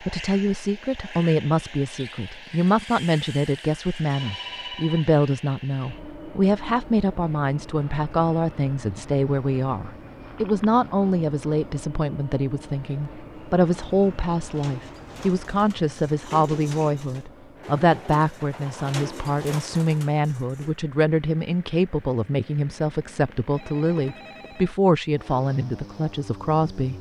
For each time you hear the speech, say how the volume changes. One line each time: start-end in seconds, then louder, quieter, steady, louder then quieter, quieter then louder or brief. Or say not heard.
0.0-26.9 steady.